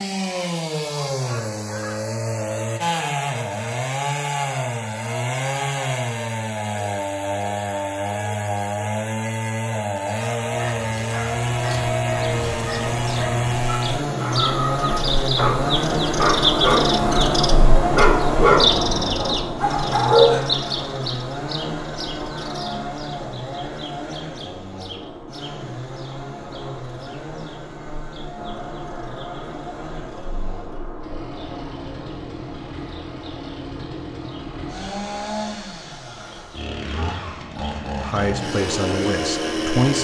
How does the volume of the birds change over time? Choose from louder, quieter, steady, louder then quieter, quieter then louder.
quieter.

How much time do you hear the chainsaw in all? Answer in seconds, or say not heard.
40 s.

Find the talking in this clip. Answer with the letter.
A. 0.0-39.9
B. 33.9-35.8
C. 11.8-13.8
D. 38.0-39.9
D.